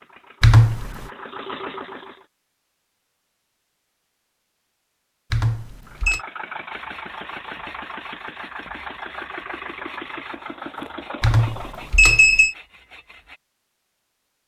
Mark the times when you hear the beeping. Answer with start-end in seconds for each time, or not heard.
0.4-1.1, 5.3-6.2, 11.2-12.6.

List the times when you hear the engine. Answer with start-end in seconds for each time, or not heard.
0.0-2.2, 5.8-12.0.